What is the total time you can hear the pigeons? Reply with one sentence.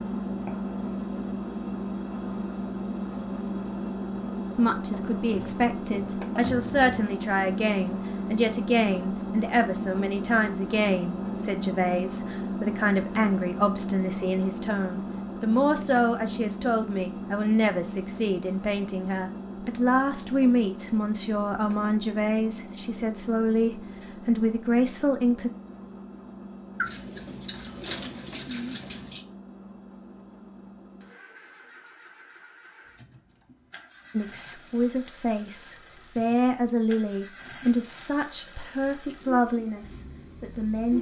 You can hear the pigeons for 4 seconds altogether.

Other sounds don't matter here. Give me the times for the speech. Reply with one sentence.
You can hear the speech from 4.5 to 25.5 s and from 34.1 to 40.9 s.